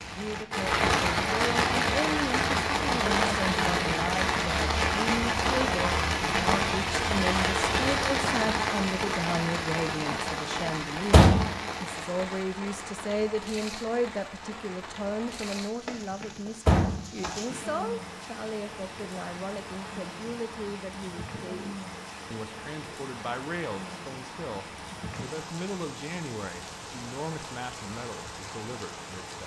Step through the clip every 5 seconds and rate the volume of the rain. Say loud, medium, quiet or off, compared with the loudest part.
loud, loud, medium, quiet, quiet, quiet.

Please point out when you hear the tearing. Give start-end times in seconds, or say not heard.
not heard.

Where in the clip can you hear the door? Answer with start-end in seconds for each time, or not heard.
11.1-11.6, 16.6-17.7.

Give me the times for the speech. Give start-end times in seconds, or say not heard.
0.1-29.4.